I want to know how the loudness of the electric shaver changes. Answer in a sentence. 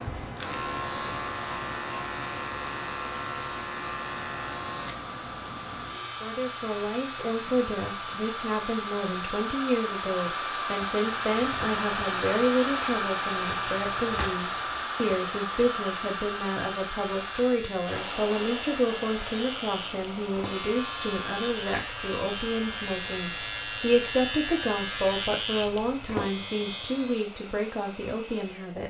The volume of the electric shaver goes down, then up.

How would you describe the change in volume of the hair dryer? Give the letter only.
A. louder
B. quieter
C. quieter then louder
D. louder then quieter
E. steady
D.